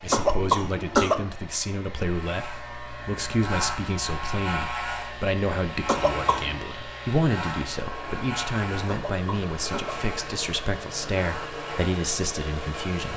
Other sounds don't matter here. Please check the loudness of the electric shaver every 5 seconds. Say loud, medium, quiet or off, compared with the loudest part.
loud, loud, medium.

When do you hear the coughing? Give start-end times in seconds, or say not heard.
0.1-1.2, 5.8-6.7, 8.8-10.1.